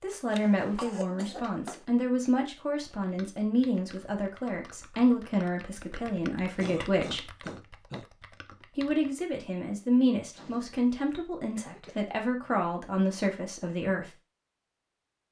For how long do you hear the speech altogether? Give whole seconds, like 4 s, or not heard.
13 s.